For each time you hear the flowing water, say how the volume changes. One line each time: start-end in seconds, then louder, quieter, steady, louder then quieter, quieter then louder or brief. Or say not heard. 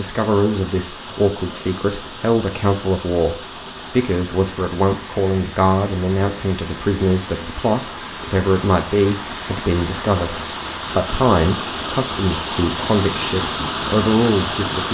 0.0-14.9 louder.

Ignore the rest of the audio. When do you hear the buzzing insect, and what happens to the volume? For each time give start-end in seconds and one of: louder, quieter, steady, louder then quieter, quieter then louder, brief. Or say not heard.
not heard.